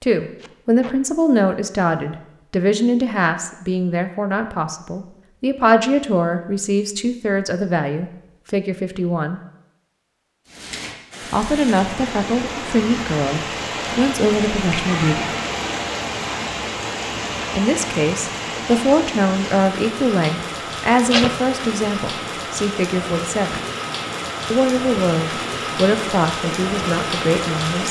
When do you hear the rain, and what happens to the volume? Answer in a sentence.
You can hear the rain from 10.4 to 27.8 s, at a steady volume.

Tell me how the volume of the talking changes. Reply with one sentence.
The loudness of the talking stays about the same.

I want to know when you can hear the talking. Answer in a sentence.
The talking can be heard from 0.0 to 9.4 s, from 11.3 to 15.3 s, from 17.5 to 23.6 s and from 24.5 to 27.8 s.